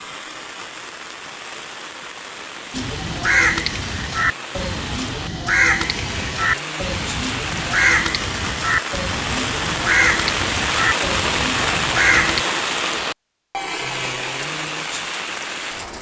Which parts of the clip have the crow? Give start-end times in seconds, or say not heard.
2.7-12.4.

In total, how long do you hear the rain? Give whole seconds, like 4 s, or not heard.
16 s.